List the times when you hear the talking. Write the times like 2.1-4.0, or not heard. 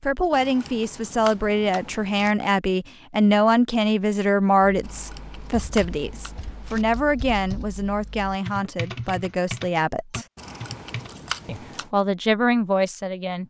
0.0-10.2, 11.4-13.4.